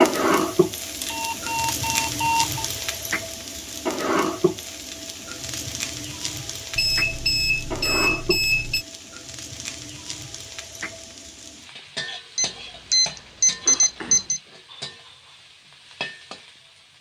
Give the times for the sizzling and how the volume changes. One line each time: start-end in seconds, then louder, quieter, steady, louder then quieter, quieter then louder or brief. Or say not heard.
0.0-16.9 quieter.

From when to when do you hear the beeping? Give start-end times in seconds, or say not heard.
1.0-2.7, 6.8-8.8, 12.3-14.4.